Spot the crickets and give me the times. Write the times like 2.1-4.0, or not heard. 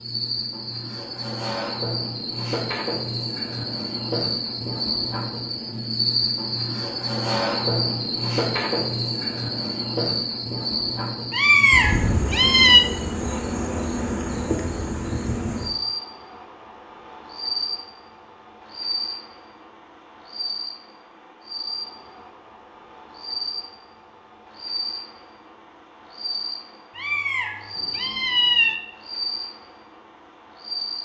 0.0-31.0.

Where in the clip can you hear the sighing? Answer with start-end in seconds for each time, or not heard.
not heard.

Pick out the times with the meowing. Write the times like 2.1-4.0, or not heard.
11.3-12.8, 26.9-28.8.